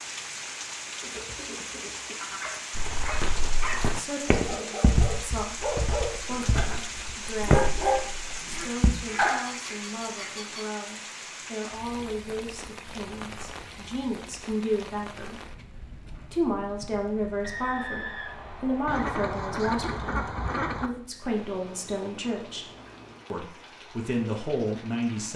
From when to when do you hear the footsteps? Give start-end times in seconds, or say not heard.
2.8-8.9.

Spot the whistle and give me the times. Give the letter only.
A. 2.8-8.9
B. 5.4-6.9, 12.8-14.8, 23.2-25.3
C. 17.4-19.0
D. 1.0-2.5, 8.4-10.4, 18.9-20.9
C.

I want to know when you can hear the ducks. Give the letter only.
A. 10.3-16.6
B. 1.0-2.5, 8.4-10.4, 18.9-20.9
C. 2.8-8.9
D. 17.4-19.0
B.